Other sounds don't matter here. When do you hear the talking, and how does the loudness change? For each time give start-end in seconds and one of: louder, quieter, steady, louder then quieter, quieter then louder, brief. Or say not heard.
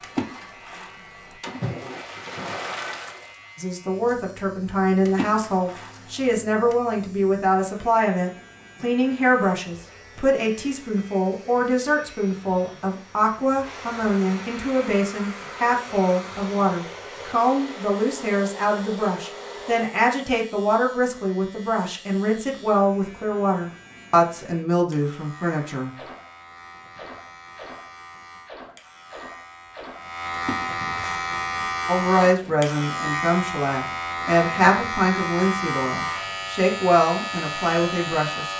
3.5-25.9 steady
31.9-38.5 steady.